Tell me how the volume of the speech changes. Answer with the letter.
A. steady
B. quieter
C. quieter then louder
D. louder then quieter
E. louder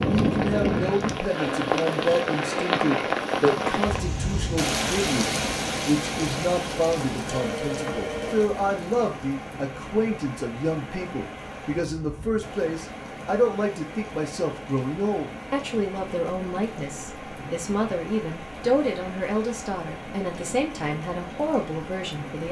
A.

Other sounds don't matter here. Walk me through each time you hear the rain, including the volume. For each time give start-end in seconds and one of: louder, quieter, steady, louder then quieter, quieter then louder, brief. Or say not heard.
0.0-22.4 quieter.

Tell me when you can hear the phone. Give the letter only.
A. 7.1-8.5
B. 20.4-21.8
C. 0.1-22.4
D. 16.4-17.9
A.